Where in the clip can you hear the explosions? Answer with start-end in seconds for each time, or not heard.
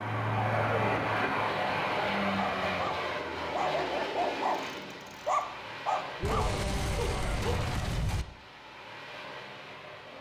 6.2-8.2.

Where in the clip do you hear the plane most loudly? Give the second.
1 s.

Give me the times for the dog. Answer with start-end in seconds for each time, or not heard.
2.4-7.8.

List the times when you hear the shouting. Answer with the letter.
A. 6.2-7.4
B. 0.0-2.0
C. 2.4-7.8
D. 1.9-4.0
A.